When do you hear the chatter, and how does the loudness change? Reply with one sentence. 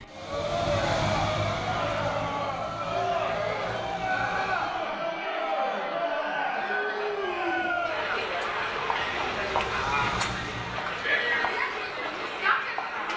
You can hear the chatter from 0.1 to 13.1 s, at a steady volume.